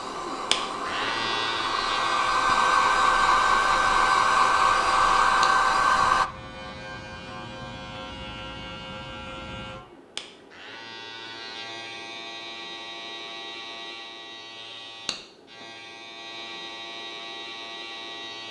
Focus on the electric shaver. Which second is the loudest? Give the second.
1 s.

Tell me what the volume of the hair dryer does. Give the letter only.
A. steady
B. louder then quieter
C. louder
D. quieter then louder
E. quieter
C.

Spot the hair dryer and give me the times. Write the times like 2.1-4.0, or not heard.
0.0-6.3.